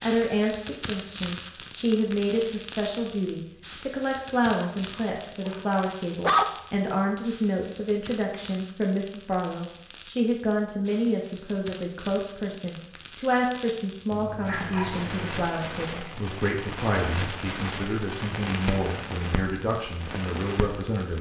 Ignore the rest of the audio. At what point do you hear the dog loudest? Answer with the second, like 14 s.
6 s.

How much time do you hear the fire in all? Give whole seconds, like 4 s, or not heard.
21 s.